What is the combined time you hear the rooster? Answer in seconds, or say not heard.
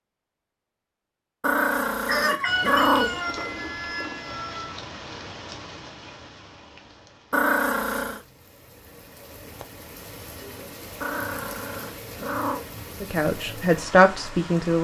3 s.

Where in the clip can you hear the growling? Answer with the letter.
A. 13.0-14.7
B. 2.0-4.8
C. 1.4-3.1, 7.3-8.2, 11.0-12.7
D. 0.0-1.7
C.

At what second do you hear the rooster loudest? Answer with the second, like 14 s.
3 s.